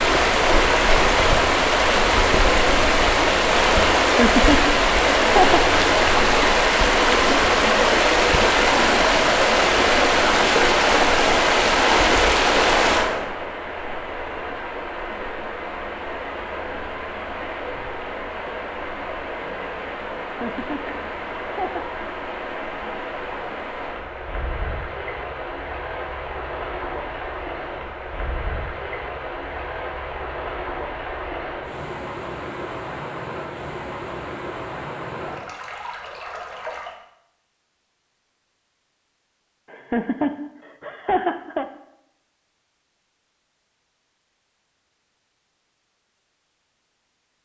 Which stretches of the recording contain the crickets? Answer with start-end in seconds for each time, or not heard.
not heard.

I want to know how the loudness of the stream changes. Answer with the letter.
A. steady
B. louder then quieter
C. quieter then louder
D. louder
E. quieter
E.